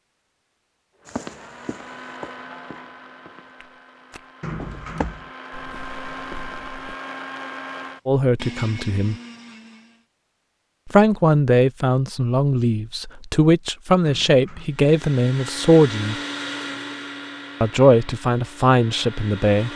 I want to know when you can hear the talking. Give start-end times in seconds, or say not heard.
8.1-9.2, 10.9-16.1, 17.6-19.7.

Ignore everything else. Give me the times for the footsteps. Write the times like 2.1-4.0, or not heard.
1.1-7.0.